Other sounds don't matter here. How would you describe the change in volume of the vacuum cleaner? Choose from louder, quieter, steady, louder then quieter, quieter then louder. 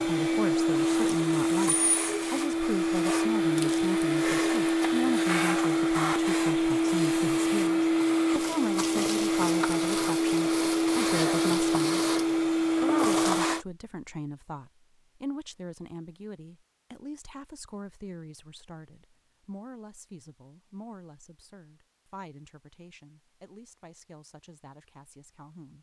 steady.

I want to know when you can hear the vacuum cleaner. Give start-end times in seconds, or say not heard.
0.0-13.7.